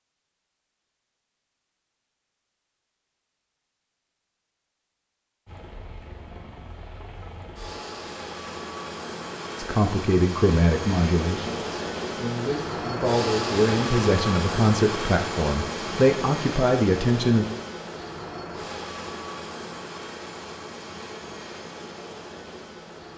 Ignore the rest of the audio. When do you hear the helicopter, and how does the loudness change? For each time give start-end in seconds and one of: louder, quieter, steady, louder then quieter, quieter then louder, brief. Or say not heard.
5.5-23.1 louder then quieter.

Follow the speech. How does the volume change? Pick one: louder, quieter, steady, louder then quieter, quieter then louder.
quieter then louder.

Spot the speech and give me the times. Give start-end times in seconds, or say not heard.
9.6-17.4.